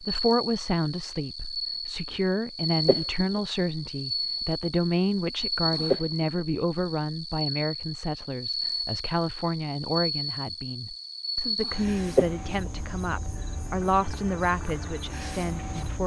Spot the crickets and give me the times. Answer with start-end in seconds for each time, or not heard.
0.0-16.0.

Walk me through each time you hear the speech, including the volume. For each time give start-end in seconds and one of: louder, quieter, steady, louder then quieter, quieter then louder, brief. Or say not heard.
0.0-16.0 steady.